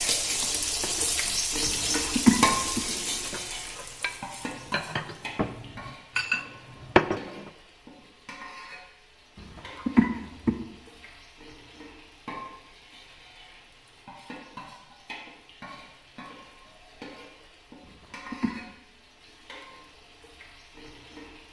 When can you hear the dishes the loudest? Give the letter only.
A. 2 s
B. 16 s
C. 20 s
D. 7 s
D.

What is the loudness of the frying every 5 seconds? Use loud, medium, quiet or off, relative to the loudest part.
loud, quiet, quiet, quiet, quiet.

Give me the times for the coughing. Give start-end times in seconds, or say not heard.
2.0-2.8, 9.8-10.6, 17.9-18.6.